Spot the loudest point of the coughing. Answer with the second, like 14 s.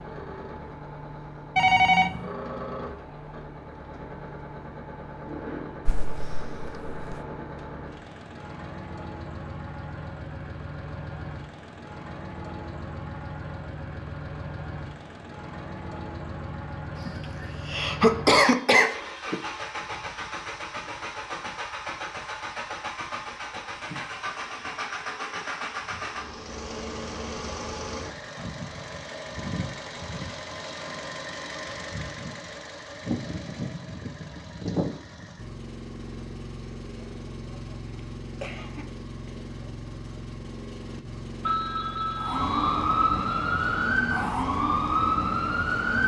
18 s.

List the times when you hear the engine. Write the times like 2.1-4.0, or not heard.
0.0-46.0.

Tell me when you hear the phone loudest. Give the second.
2 s.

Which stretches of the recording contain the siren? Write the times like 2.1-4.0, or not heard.
42.1-46.0.